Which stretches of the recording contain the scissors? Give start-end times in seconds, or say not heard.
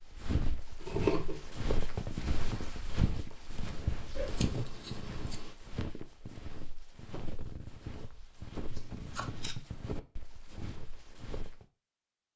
0.8-1.4, 4.2-5.5, 8.7-9.6.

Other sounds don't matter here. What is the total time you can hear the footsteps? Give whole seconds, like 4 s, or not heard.
12 s.